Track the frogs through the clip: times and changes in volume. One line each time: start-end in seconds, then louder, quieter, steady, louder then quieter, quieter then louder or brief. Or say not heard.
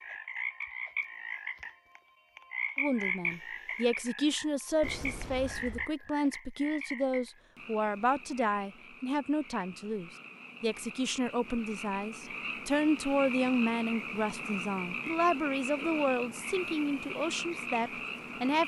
0.0-18.6 quieter then louder.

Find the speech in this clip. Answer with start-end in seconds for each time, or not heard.
2.8-18.6.